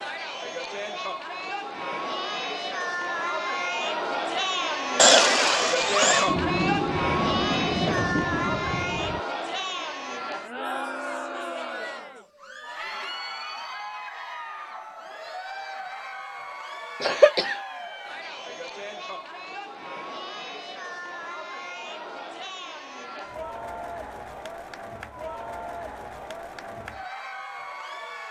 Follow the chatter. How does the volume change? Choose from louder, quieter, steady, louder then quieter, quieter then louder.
quieter.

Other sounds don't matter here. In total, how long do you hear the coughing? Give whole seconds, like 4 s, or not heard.
2 s.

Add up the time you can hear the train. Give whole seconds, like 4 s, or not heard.
3 s.